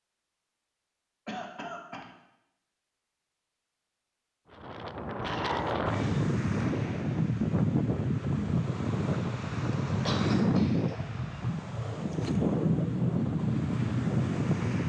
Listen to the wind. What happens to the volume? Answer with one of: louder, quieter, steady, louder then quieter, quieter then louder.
steady.